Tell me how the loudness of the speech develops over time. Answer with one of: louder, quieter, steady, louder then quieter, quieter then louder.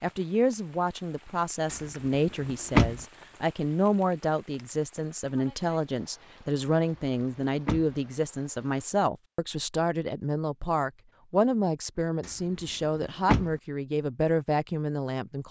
steady.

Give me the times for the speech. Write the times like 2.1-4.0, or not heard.
0.0-15.4.